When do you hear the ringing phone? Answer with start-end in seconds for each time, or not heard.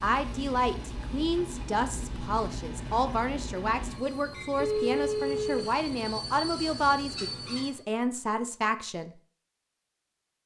4.5-5.5.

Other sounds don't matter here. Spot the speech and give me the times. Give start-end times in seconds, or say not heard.
0.0-9.1.